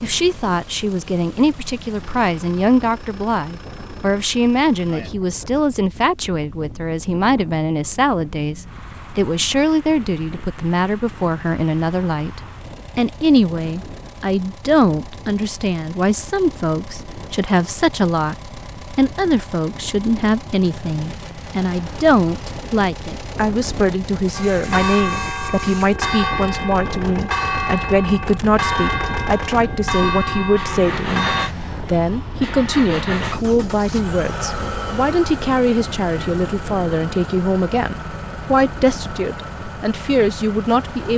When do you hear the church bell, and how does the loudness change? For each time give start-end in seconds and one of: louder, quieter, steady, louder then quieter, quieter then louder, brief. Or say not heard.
24.4-31.5 steady.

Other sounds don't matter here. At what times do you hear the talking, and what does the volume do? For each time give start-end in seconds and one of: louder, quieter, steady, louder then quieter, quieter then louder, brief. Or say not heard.
0.0-41.1 steady.